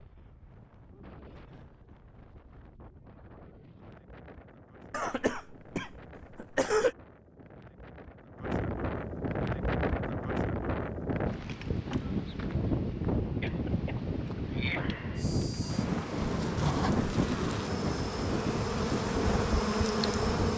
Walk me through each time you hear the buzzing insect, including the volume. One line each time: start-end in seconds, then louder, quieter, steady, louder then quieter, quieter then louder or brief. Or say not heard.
15.2-20.5 louder.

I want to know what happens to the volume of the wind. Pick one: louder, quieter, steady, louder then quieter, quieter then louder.
louder.